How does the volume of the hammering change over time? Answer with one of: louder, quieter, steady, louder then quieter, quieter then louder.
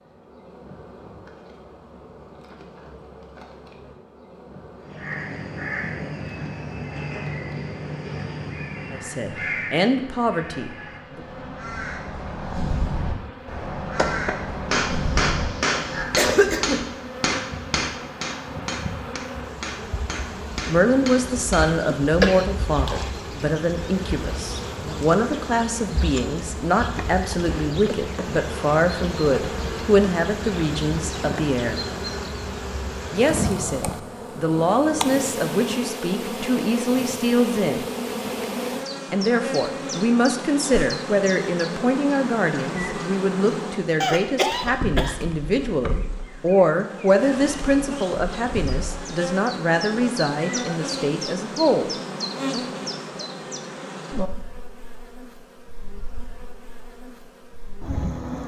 quieter.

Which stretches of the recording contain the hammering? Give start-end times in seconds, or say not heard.
13.9-21.8.